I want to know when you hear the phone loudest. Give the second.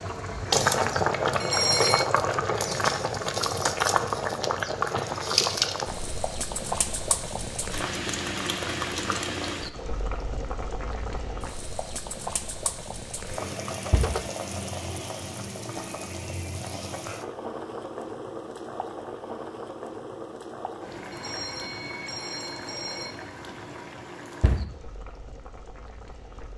2 s.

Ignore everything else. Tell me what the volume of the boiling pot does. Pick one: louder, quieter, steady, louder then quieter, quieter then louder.
quieter.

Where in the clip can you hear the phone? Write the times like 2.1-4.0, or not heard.
1.4-2.0, 13.8-14.2, 21.1-23.1.